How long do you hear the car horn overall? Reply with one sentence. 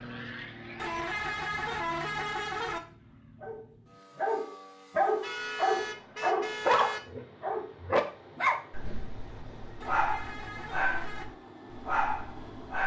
You can hear the car horn for 5 seconds altogether.